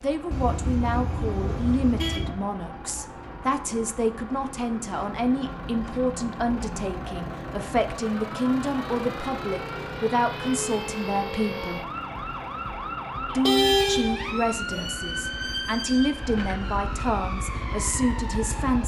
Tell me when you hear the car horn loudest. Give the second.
14 s.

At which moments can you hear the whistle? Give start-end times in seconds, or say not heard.
not heard.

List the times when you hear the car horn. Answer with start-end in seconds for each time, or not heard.
0.3-2.3, 13.3-14.8.